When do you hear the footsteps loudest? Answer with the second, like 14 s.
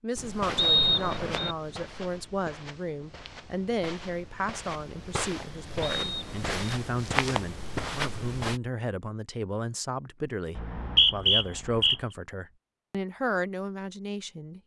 7 s.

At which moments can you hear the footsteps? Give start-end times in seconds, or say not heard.
0.1-8.6.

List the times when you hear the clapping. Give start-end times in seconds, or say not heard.
not heard.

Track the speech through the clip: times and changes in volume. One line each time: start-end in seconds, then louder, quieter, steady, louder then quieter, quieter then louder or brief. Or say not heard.
0.0-14.6 steady.